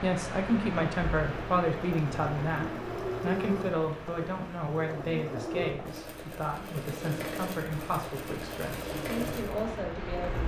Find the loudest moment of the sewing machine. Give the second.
3 s.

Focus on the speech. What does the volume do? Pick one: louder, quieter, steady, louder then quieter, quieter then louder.
quieter.